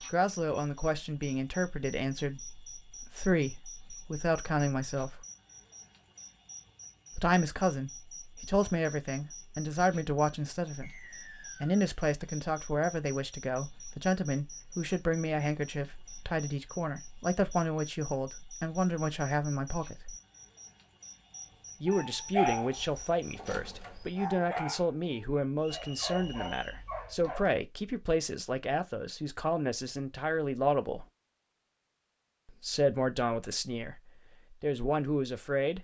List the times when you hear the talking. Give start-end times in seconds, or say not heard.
0.1-5.2, 7.2-20.1, 21.8-31.1, 32.5-35.7.